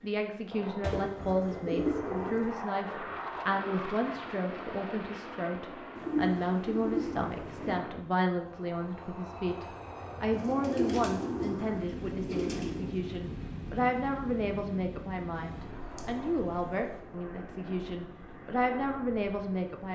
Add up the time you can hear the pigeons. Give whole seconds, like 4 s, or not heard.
8 s.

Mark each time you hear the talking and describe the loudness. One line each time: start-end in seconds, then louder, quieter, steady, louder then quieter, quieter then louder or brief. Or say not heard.
0.0-19.8 steady.